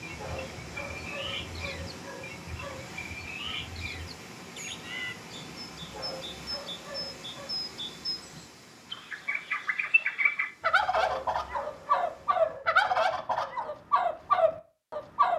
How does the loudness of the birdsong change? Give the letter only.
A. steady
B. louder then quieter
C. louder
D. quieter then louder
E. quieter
C.